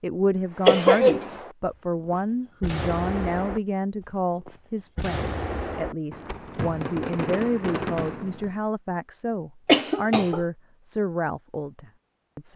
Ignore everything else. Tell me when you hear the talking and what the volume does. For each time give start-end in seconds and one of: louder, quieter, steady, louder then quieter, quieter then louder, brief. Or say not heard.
0.0-12.5 steady.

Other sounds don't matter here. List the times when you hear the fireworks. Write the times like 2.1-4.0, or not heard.
0.5-8.6.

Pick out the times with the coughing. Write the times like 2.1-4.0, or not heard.
0.7-1.3, 9.7-10.4.